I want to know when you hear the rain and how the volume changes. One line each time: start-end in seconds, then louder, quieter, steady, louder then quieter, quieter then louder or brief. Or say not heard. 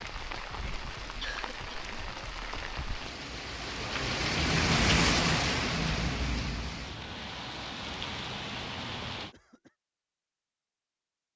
0.0-9.3 louder then quieter.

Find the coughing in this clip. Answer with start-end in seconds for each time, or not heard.
1.2-1.9, 9.1-9.7.